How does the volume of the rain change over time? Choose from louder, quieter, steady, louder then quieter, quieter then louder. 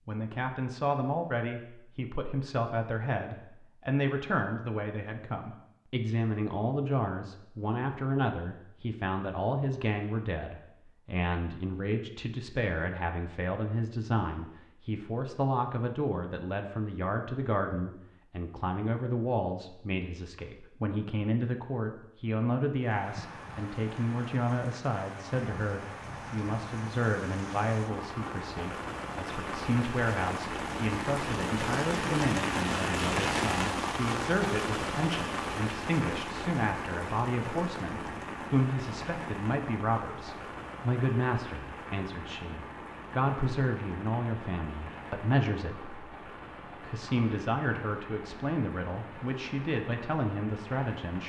louder then quieter.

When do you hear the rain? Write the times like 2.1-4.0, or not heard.
22.8-51.2.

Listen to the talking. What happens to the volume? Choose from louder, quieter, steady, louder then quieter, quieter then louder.
steady.